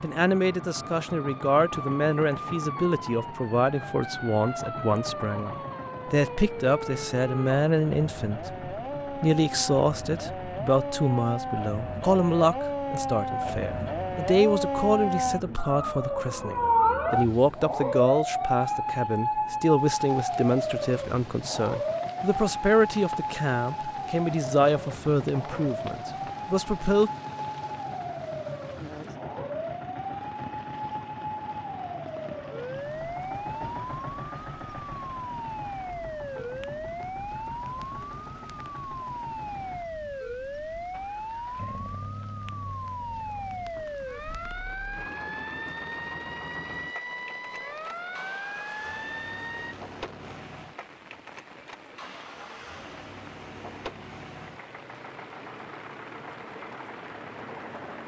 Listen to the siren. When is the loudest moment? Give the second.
17 s.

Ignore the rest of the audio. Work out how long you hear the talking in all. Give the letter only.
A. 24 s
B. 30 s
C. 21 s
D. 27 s
D.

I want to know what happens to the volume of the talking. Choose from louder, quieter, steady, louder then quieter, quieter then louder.
steady.